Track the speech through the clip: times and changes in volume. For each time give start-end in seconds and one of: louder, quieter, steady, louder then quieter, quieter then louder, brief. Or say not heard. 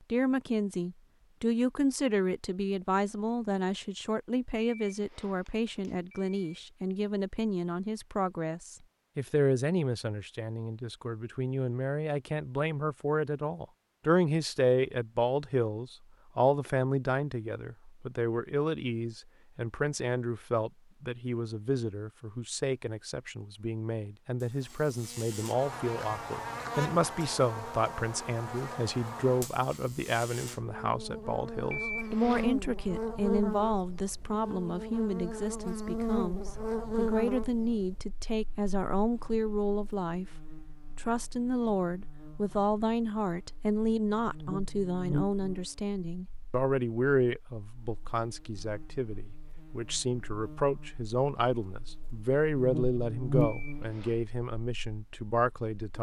0.1-55.9 steady.